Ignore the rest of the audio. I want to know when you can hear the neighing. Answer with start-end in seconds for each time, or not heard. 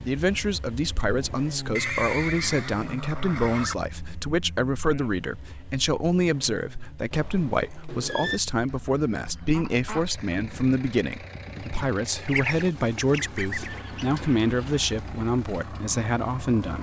1.8-3.8, 7.1-8.4, 13.6-14.9.